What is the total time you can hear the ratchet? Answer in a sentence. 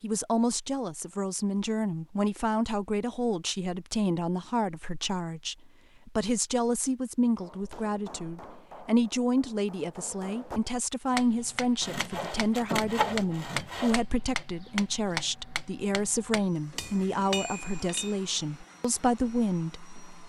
The ratchet can't be heard in this clip.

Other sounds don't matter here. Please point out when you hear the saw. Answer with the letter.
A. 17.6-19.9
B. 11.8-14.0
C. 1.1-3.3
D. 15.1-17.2
B.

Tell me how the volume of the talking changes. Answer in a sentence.
The loudness of the talking stays about the same.